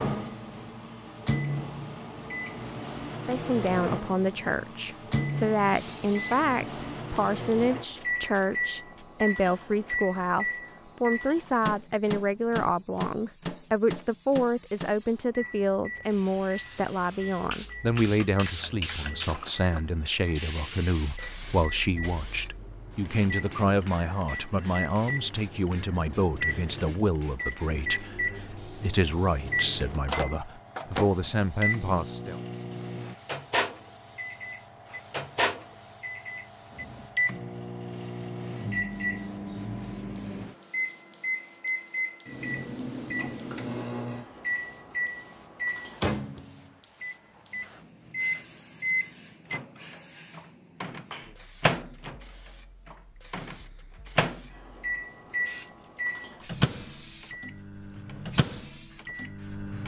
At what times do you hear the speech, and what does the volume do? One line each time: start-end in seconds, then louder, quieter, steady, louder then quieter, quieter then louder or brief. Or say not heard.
3.2-32.4 steady.